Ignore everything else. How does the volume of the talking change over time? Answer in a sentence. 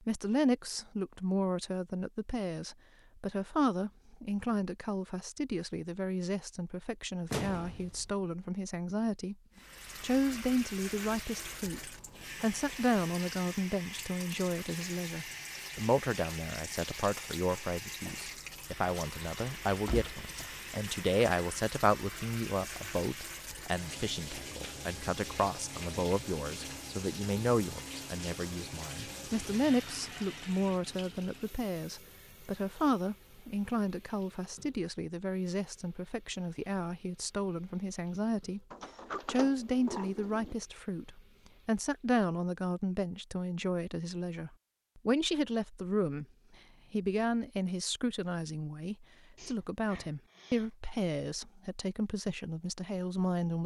The volume of the talking stays about the same.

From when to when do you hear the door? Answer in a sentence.
The door can be heard from 7.3 to 8.1 s, from 19.7 to 20.6 s and from 38.7 to 40.5 s.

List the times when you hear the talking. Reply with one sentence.
The talking can be heard from 0.1 to 9.3 s, from 10.0 to 38.6 s, from 39.2 to 46.2 s and from 46.9 to 53.6 s.